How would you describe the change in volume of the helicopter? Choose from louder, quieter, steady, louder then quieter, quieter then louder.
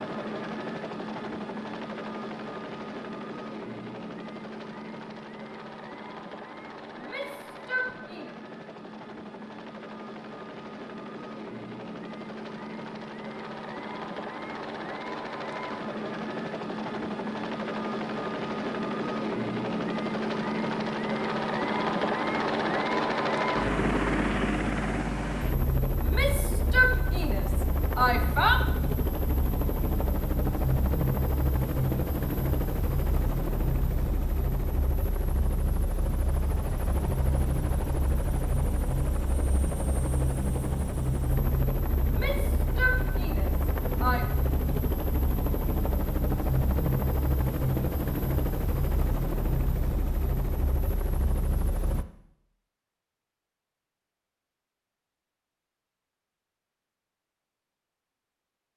louder.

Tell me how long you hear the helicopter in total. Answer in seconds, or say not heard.
52 s.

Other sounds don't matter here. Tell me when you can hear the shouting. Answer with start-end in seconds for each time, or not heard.
7.0-8.3, 26.0-28.6, 42.0-44.2.